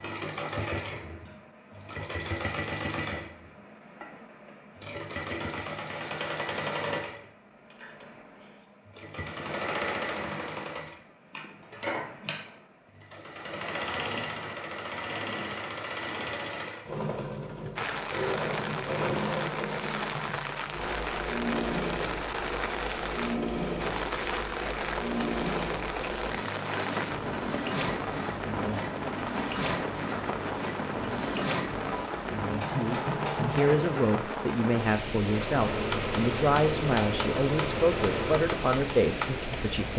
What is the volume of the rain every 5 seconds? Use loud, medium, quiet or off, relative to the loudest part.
off, off, off, loud, loud, loud, loud, loud.